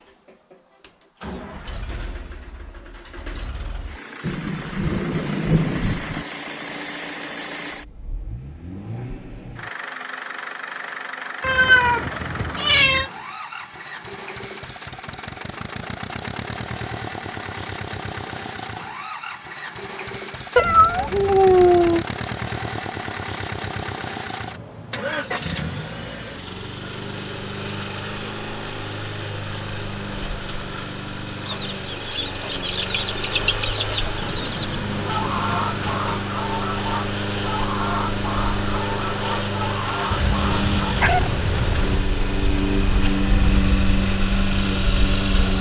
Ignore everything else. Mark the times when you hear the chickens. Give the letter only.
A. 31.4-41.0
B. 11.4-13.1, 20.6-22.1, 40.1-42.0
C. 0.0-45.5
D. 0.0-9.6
A.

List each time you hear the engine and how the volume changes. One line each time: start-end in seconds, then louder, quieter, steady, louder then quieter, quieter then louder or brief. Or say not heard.
0.0-45.5 louder.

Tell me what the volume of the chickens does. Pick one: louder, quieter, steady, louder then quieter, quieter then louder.
steady.